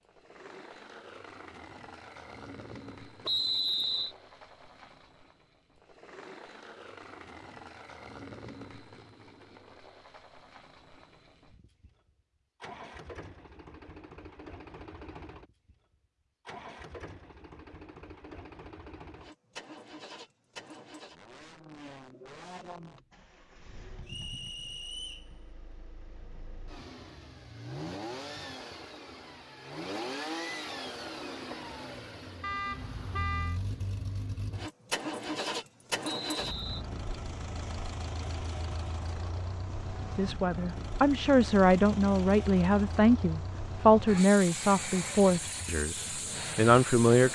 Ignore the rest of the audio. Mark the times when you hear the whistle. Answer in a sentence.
You can hear the whistle from 3.2 to 4.2 s, from 24.1 to 25.2 s and from 36.0 to 36.9 s.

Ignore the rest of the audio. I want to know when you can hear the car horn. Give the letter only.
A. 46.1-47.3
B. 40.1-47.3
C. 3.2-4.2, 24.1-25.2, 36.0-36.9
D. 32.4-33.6
D.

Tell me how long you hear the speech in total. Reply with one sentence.
The speech can be heard for 7 seconds in total.